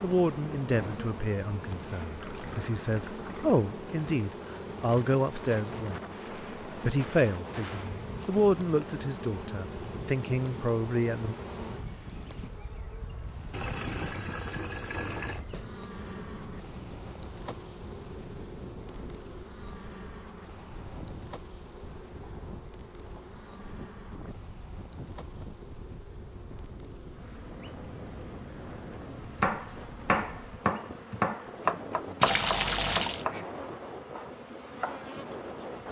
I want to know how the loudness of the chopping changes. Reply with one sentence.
The volume of the chopping goes down.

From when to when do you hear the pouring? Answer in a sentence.
The pouring can be heard from 2.0 to 3.6 s, from 13.5 to 15.4 s and from 32.2 to 33.2 s.